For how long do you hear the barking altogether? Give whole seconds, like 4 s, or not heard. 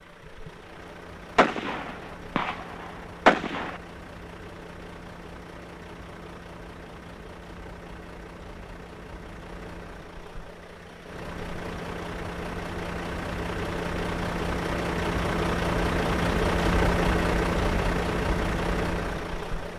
not heard.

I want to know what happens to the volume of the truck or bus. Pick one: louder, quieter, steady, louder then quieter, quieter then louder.
louder.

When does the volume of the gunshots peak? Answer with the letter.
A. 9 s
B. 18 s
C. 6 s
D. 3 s
D.